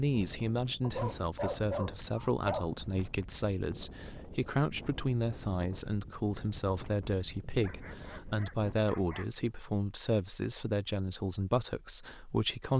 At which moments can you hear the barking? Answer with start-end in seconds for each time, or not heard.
0.8-2.8, 7.5-9.4.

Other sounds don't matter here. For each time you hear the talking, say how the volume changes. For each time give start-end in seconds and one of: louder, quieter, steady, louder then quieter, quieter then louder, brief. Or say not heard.
0.0-12.7 steady.